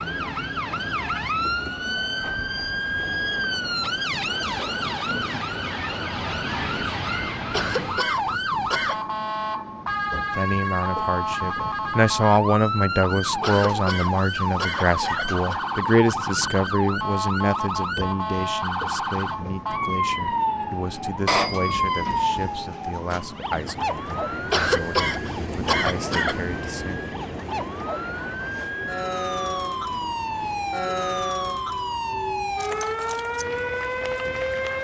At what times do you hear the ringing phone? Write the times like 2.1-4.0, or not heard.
21.2-22.6.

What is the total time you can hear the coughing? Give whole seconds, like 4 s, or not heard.
6 s.